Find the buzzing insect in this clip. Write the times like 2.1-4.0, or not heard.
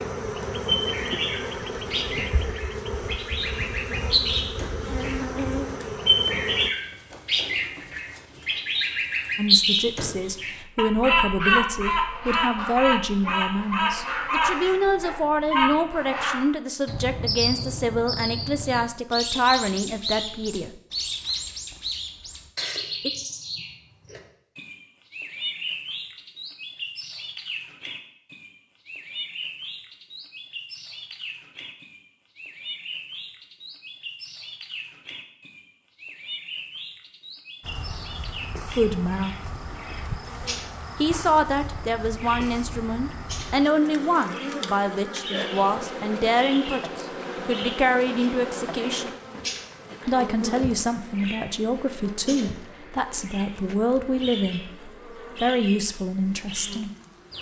0.0-6.7, 37.6-57.3.